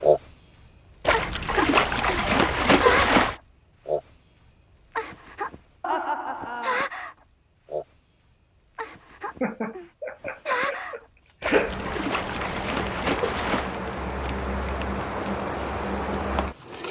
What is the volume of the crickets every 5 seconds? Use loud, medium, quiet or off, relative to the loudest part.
loud, medium, medium, loud.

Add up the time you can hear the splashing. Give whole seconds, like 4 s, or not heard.
5 s.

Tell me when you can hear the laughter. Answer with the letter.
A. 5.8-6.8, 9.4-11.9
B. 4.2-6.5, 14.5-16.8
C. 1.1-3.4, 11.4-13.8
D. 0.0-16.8
A.